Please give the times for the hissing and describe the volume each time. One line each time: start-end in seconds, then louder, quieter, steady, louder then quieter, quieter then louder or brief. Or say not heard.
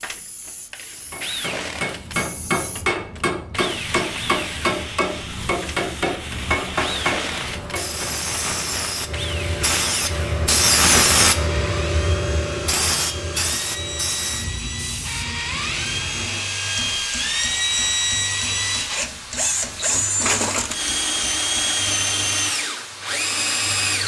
0.0-24.0 louder then quieter.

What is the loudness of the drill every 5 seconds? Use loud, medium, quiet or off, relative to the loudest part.
medium, medium, medium, loud, loud.